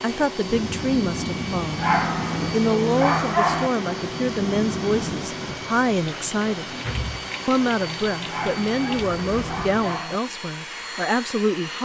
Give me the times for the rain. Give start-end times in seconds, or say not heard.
0.2-9.7.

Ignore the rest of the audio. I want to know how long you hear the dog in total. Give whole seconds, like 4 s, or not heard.
4 s.